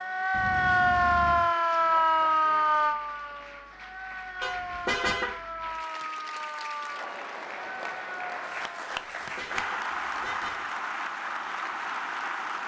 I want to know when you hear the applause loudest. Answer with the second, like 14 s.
10 s.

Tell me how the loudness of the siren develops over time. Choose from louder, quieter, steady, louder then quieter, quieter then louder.
quieter.